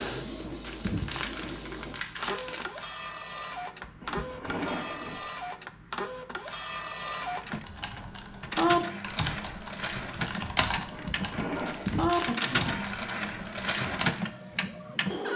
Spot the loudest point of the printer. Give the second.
14 s.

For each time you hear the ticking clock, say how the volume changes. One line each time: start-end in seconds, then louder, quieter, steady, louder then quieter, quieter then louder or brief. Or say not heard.
not heard.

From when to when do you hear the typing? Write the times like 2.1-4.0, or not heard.
7.4-14.2.